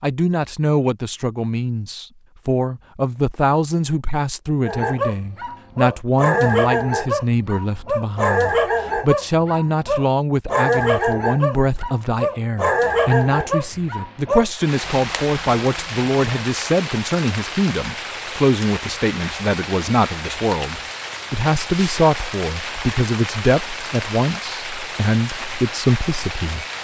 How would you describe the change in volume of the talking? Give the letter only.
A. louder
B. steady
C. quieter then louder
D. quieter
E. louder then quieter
B.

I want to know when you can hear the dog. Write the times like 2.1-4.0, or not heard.
4.7-16.5.